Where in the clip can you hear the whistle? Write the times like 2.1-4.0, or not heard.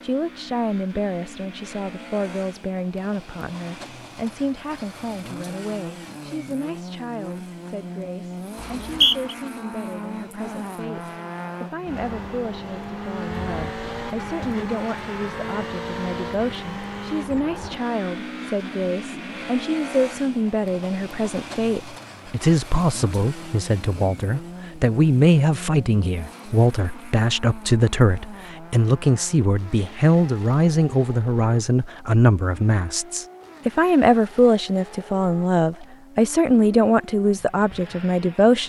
8.6-9.3.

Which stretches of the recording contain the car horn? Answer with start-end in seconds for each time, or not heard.
not heard.